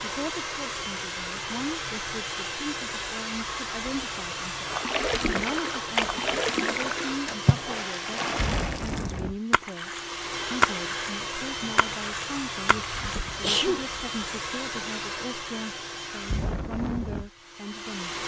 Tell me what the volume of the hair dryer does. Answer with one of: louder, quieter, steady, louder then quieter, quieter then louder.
steady.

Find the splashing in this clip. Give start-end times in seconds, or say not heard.
4.7-13.3.